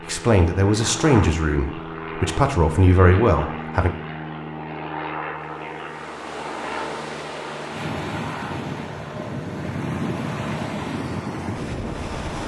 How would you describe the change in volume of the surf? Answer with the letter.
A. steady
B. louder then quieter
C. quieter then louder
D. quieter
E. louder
E.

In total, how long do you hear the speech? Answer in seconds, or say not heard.
4 s.